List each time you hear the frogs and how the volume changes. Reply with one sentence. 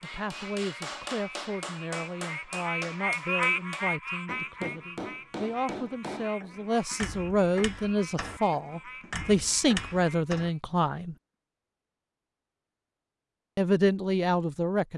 You can hear the frogs from 0.0 to 10.6 s, getting louder then quieter.